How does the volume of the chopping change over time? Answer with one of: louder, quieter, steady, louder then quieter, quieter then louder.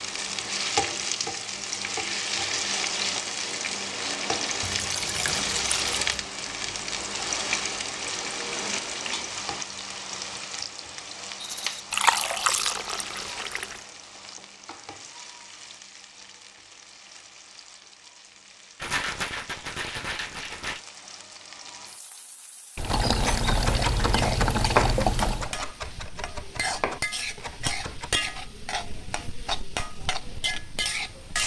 louder then quieter.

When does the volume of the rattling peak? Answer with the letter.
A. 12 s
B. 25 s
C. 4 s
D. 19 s
D.